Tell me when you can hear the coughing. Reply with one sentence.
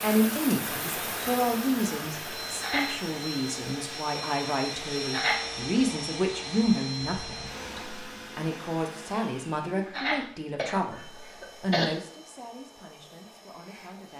You can hear the coughing from 2.5 to 3.0 s, from 5.0 to 5.5 s and from 9.8 to 11.8 s.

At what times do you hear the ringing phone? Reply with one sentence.
The ringing phone can't be heard in this clip.